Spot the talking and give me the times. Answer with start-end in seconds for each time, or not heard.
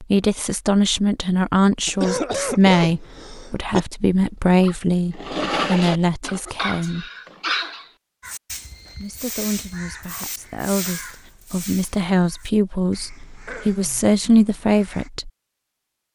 0.0-7.0, 8.9-15.3.